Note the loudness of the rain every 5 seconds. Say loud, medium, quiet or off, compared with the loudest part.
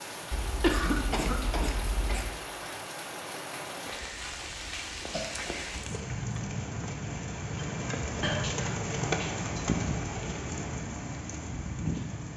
medium, loud, loud.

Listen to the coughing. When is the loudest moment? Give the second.
1 s.